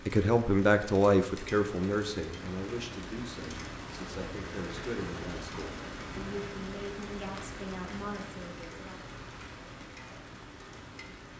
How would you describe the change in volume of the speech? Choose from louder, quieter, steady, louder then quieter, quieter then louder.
quieter.